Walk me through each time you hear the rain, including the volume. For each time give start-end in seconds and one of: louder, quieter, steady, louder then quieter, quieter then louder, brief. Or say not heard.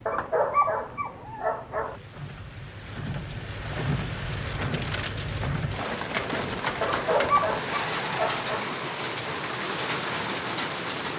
0.0-11.1 louder.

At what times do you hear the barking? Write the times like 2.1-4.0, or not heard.
0.1-1.9, 6.8-8.7.